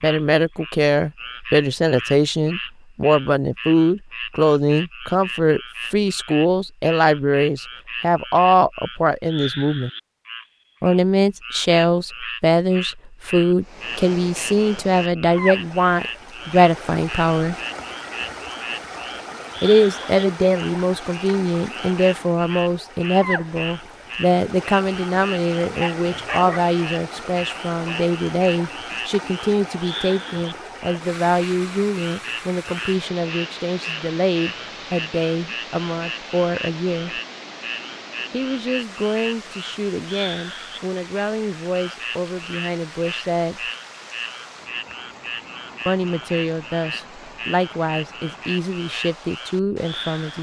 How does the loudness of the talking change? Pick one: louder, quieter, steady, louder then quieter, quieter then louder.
quieter.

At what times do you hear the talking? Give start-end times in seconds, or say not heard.
0.0-9.9, 10.8-17.6, 19.6-37.2, 38.3-43.6, 45.9-50.3.